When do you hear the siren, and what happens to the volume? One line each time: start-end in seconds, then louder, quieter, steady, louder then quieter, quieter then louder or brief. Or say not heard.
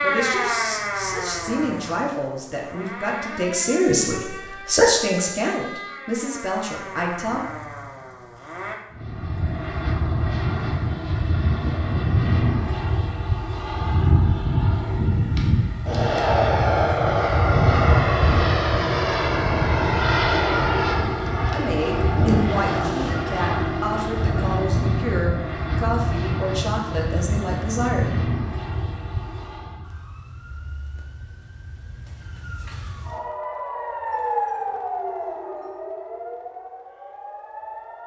0.0-8.8 quieter
29.8-38.0 louder then quieter.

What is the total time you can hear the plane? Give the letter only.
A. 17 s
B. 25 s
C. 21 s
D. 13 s
C.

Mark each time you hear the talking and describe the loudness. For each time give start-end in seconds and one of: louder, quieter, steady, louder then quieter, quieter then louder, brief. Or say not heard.
0.0-7.5 louder then quieter
21.5-28.1 steady.